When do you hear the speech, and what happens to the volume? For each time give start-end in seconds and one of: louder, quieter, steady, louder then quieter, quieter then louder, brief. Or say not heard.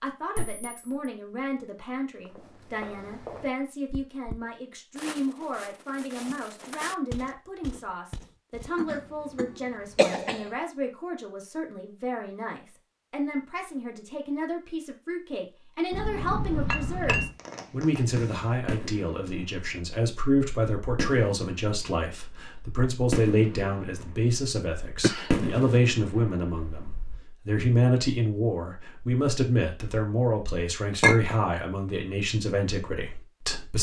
0.0-33.7 louder.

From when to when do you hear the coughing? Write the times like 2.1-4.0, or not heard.
8.8-10.4, 25.0-25.8.